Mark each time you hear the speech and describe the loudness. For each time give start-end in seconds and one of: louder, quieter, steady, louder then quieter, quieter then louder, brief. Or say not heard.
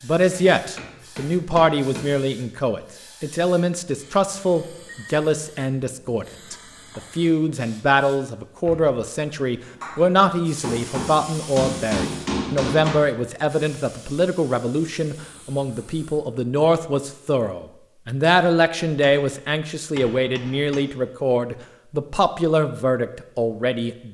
0.0-24.0 steady.